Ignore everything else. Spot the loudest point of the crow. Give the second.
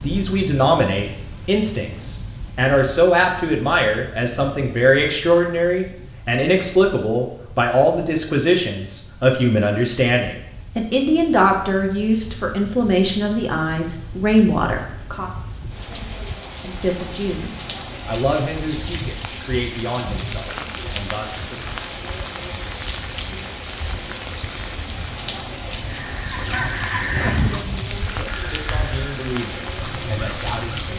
27 s.